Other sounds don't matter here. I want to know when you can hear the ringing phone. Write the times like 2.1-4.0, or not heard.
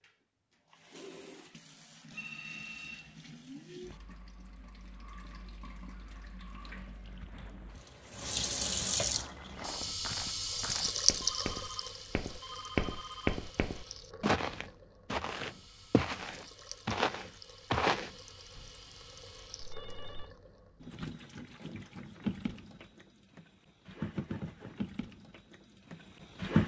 2.1-3.4, 11.2-13.4, 19.6-20.3.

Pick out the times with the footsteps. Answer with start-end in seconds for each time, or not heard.
9.1-18.6.